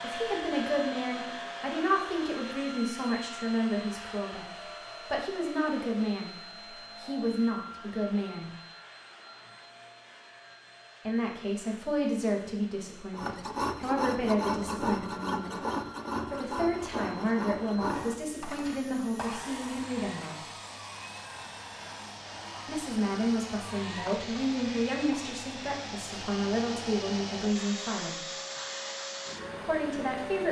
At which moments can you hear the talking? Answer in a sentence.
You can hear the talking from 0.0 to 6.3 s, from 7.0 to 8.5 s, from 11.1 to 15.6 s, from 16.3 to 20.4 s, from 22.6 to 28.2 s and from 29.6 to 30.4 s.